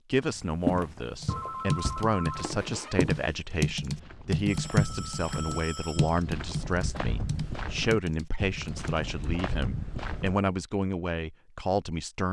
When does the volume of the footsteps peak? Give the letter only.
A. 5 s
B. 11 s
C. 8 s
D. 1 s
D.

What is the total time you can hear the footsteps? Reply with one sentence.
The footsteps can be heard for 10 seconds in total.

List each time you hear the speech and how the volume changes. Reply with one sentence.
The speech can be heard from 0.1 to 12.2 s, at a steady volume.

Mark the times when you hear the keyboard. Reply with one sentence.
You can hear the keyboard from 1.2 to 9.1 s.